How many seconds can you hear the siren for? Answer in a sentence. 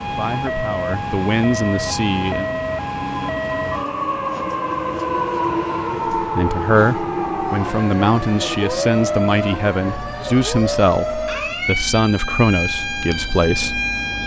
The siren can be heard for 14 seconds in total.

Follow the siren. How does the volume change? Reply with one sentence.
The loudness of the siren stays about the same.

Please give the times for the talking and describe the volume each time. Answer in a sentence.
The talking can be heard briefly from 0.1 to 2.5 s; and from 6.2 to 13.8 s, at a steady volume.